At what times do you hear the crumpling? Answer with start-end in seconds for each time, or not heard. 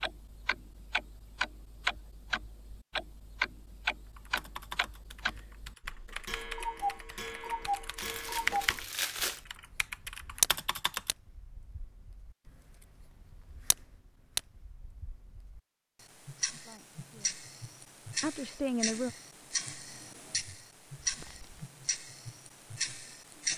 8.0-9.4, 21.0-21.7.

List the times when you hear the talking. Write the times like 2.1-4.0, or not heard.
16.6-17.4, 18.2-19.1.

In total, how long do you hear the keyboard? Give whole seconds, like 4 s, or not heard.
7 s.